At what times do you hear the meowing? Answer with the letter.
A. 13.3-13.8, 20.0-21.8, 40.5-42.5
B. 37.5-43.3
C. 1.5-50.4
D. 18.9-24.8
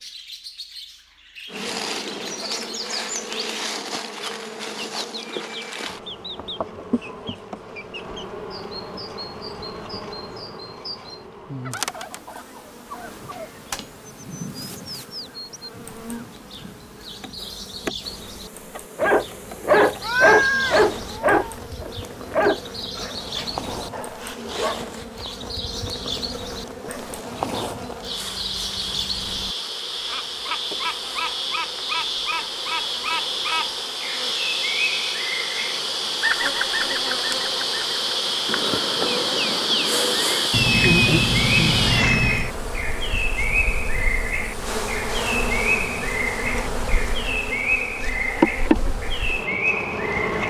A.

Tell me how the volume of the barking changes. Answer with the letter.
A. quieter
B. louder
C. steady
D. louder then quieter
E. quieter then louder
A.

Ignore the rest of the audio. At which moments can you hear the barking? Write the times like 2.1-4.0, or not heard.
18.9-24.8.